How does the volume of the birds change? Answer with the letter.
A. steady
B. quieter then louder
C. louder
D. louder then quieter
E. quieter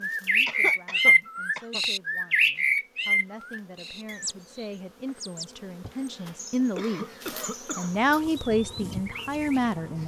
E.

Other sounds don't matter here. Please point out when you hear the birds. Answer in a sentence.
The birds can be heard from 0.0 to 10.0 s.